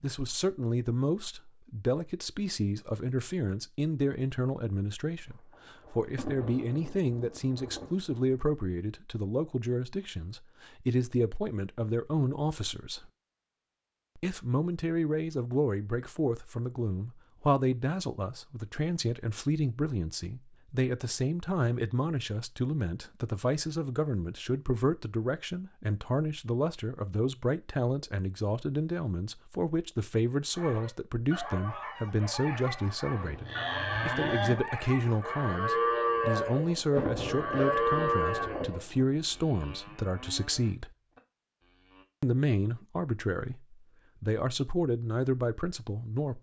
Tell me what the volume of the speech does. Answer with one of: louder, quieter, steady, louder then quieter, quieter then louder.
steady.